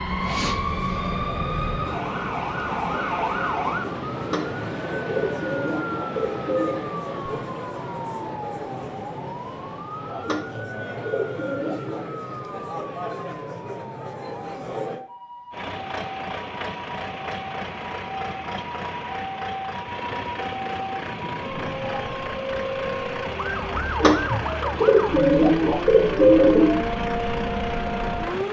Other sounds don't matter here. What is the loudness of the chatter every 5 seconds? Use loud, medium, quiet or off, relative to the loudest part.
loud, loud, loud, off, off, off.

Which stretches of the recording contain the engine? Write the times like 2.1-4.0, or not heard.
15.5-28.4.